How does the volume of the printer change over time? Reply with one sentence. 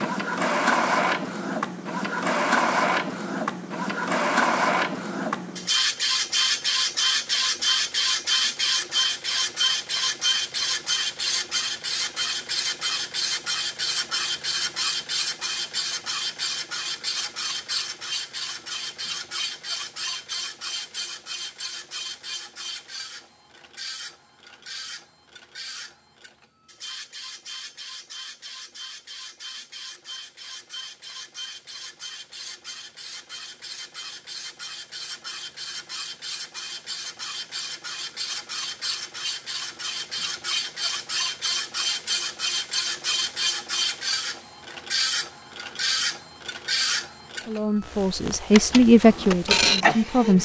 The volume of the printer goes down, then up.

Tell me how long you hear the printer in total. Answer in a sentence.
The printer can be heard for 50 seconds in total.